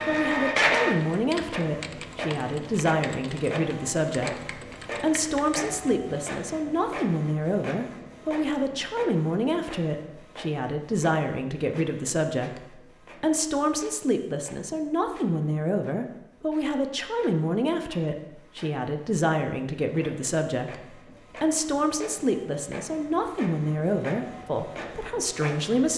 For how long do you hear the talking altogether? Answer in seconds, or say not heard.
26 s.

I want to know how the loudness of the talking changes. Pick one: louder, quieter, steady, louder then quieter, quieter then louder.
steady.